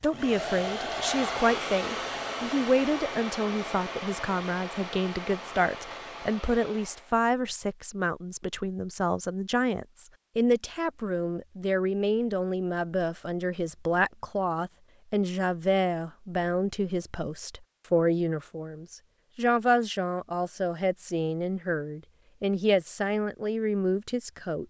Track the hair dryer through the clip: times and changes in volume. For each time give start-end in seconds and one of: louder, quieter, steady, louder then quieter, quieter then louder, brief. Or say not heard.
0.0-7.2 quieter.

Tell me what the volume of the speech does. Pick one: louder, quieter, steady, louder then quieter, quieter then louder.
steady.